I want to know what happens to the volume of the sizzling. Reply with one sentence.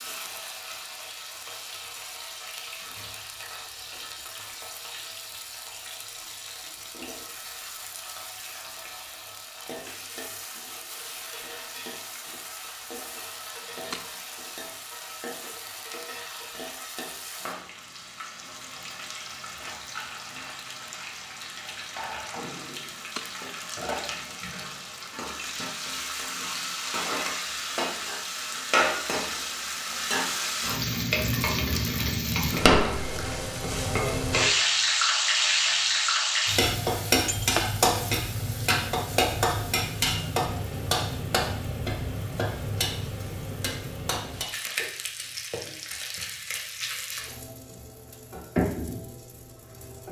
The loudness of the sizzling goes up, then down.